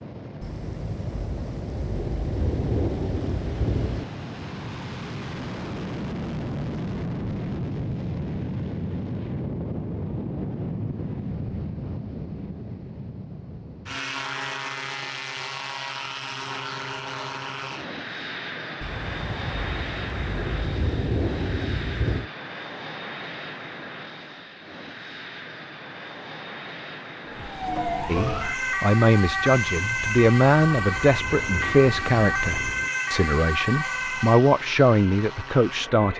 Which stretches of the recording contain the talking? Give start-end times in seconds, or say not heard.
28.1-36.1.